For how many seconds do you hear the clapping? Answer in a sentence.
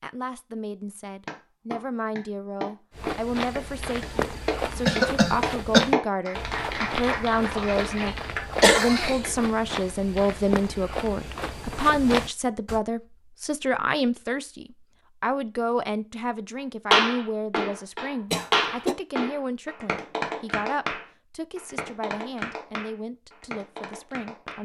The clapping can be heard for 16 seconds in total.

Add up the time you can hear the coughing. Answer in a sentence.
You can hear the coughing for 2 seconds altogether.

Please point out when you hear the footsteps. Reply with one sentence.
The footsteps can be heard from 2.9 to 12.8 s.